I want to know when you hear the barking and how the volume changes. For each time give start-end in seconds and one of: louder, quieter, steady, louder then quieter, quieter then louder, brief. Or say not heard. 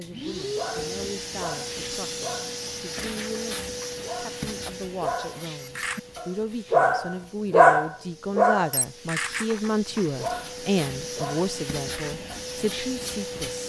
0.6-12.4 louder then quieter.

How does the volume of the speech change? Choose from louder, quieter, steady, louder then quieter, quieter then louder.
louder.